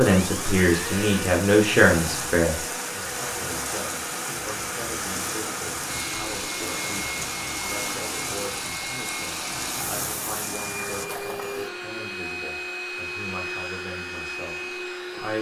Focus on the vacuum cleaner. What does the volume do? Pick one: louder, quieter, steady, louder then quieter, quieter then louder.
steady.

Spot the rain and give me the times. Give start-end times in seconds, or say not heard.
0.0-11.1.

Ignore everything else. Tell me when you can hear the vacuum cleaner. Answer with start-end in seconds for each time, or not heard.
0.0-15.3.